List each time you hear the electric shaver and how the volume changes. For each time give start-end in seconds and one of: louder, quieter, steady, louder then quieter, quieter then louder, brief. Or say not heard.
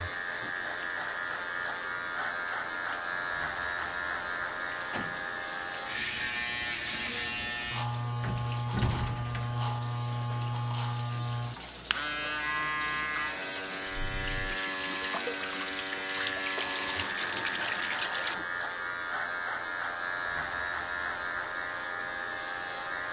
0.0-23.0 steady.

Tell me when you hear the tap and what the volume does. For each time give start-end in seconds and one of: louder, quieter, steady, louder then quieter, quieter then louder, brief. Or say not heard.
0.1-18.4 louder.